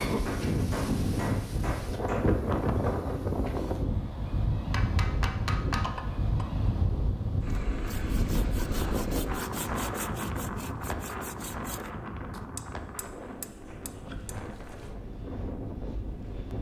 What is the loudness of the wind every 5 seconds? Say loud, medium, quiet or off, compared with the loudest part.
loud, loud, medium, medium.